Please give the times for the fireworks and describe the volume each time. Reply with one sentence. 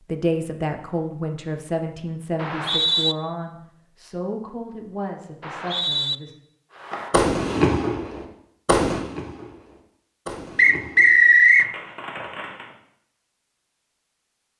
The fireworks can be heard from 6.8 to 12.8 s, getting quieter.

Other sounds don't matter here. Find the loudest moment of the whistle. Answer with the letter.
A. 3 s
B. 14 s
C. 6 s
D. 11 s
D.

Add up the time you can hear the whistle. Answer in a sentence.
The whistle can be heard for 3 seconds in total.